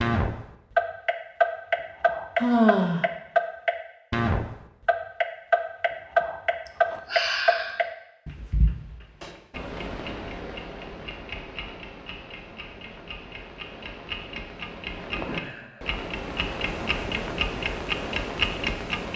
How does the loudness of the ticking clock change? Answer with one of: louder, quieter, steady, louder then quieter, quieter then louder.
quieter then louder.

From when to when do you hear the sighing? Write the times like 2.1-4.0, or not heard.
2.4-3.0, 6.7-7.8, 15.2-15.9.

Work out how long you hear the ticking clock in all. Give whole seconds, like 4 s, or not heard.
19 s.